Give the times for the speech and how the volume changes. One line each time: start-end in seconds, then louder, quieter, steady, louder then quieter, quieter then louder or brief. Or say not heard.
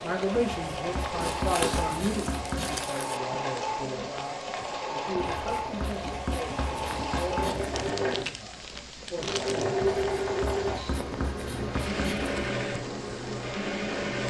0.0-9.9 quieter.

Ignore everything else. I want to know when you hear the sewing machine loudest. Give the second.
10 s.